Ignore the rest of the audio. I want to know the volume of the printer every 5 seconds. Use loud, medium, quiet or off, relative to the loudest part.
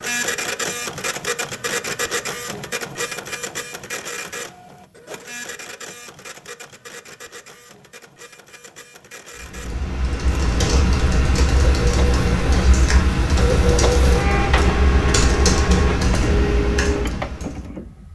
loud, quiet, loud, loud.